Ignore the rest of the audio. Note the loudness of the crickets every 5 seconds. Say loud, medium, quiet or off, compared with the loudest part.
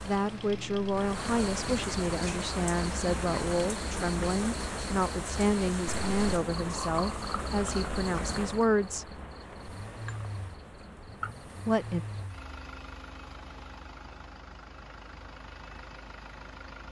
loud, loud, medium, off.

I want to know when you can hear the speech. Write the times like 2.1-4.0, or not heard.
0.0-9.1, 11.7-12.1.